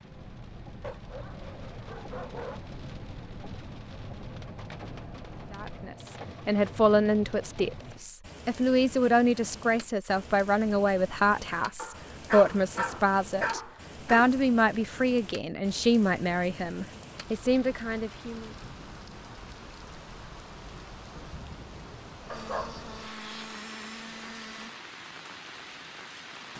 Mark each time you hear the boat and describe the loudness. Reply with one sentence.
You can hear the boat from 0.0 to 5.9 s, at a steady volume; and briefly from 22.2 to 24.8 s.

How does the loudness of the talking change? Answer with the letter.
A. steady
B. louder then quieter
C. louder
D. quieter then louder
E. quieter
A.